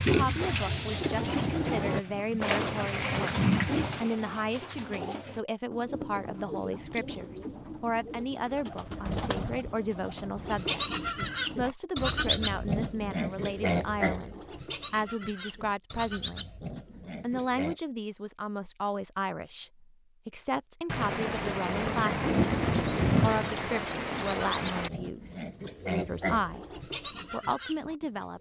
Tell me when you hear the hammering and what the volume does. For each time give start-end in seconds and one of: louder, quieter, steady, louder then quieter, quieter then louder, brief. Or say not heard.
not heard.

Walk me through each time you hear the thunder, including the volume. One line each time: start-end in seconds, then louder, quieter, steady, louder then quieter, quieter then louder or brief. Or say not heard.
8.7-10.7 brief
20.9-24.9 louder then quieter.